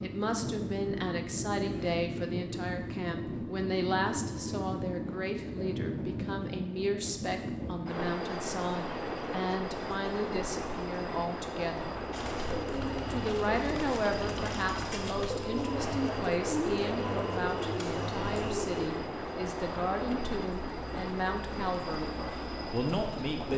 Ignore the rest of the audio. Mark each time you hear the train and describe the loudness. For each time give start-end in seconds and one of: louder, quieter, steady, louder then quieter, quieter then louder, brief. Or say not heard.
0.0-23.5 steady.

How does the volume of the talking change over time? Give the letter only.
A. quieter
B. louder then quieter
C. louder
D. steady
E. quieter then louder
D.